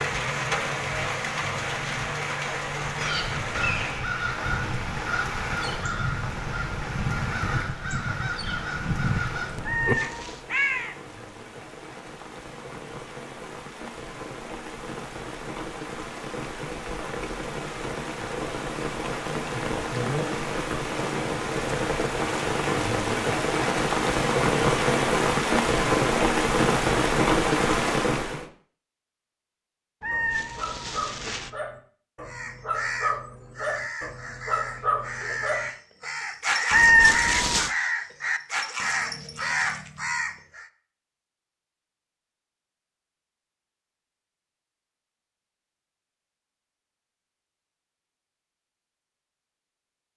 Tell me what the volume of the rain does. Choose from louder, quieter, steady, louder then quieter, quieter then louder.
quieter then louder.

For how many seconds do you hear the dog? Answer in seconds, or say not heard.
10 s.